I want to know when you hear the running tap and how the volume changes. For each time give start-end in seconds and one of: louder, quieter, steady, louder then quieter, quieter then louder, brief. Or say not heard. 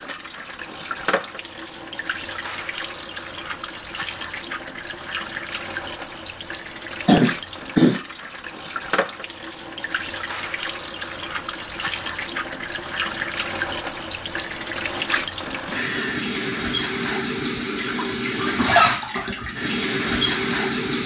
0.0-21.0 louder.